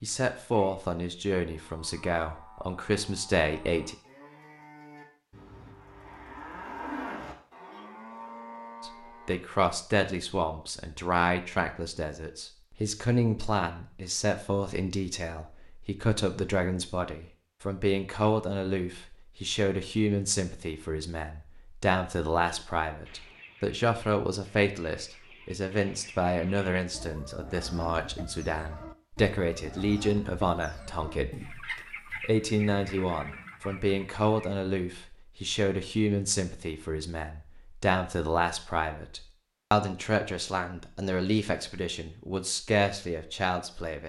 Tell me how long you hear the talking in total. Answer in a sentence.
The talking can be heard for 39 seconds in total.